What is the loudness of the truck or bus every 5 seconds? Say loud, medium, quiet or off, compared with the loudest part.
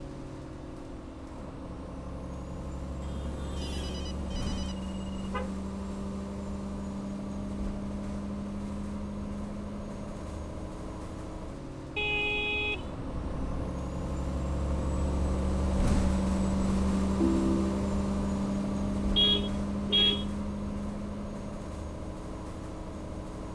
medium, medium, medium, loud, medium.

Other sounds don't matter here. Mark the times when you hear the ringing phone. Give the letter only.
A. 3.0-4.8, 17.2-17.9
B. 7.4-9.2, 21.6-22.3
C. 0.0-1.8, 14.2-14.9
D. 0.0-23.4
A.